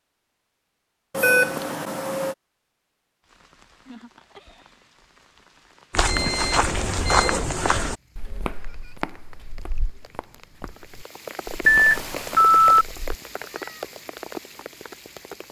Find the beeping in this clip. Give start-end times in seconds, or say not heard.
1.1-2.4, 6.0-7.4, 11.7-12.8.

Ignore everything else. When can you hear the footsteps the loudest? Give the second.
7 s.